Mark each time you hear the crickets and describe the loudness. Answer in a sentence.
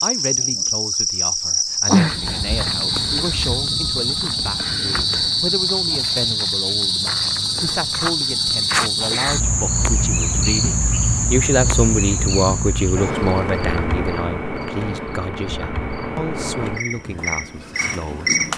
You can hear the crickets from 0.0 to 18.5 s, getting quieter.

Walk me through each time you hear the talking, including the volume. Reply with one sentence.
The talking can be heard from 0.0 to 18.4 s, getting louder then quieter.